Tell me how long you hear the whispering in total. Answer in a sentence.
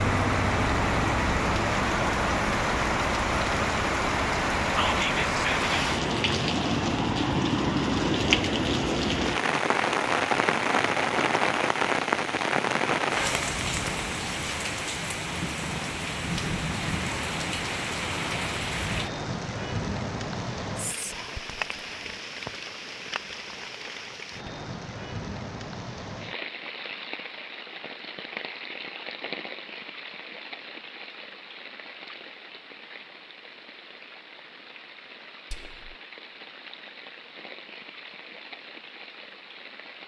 The whispering can be heard for 3 seconds in total.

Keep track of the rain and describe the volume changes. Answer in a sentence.
The volume of the rain goes down.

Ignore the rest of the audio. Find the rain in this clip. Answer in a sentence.
The rain can be heard from 0.0 to 40.0 s.